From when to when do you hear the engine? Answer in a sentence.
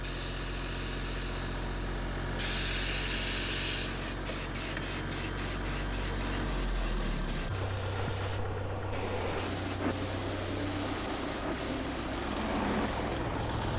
The engine can be heard from 0.0 to 13.7 s.